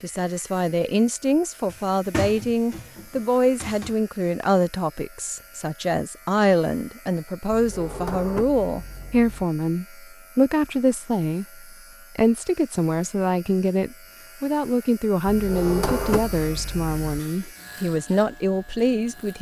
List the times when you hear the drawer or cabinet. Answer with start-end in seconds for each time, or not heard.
1.6-4.0, 7.5-9.4, 15.2-17.2.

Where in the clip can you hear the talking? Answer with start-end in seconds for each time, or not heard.
0.0-19.3.